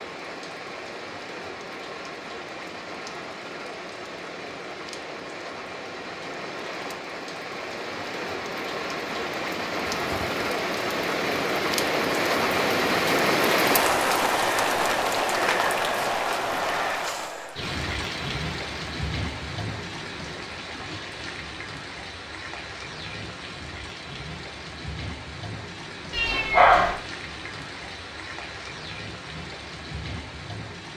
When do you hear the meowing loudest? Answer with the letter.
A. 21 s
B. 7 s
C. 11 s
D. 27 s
D.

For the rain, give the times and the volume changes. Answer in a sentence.
The rain can be heard from 0.0 to 30.9 s, getting louder then quieter.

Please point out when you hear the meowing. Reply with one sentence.
The meowing can be heard from 9.8 to 10.4 s and from 26.1 to 27.0 s.